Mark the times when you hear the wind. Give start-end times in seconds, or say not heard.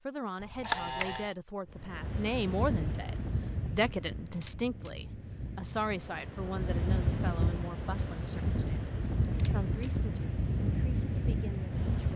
1.7-12.1.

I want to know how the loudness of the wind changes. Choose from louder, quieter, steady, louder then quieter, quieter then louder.
quieter then louder.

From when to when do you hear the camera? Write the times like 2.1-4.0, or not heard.
0.4-1.4, 4.2-4.9, 9.2-9.9.